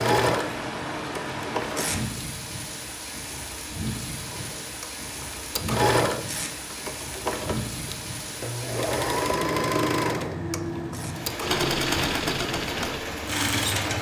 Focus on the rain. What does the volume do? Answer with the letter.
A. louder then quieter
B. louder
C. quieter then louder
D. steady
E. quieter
D.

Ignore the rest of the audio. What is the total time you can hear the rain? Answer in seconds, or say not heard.
14 s.